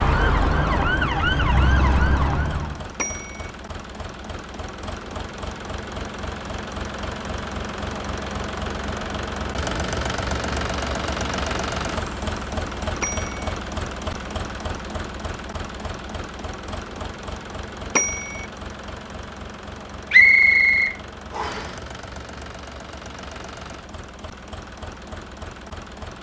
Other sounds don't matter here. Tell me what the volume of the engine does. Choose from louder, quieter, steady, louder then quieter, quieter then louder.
louder then quieter.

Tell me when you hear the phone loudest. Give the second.
18 s.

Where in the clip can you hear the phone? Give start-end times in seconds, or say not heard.
3.0-3.5, 13.0-13.4, 17.9-18.4.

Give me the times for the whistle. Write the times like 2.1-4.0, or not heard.
20.1-21.7.